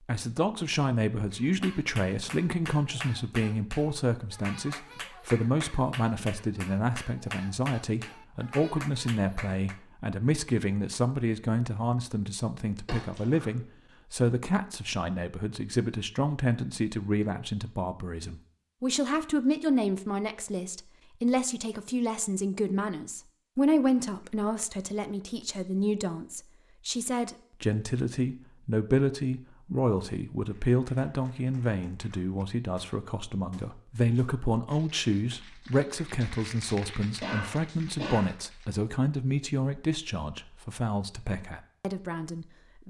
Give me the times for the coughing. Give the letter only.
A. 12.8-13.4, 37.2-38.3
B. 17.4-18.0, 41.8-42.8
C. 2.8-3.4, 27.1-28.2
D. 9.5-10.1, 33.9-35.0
A.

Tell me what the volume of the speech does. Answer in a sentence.
The loudness of the speech stays about the same.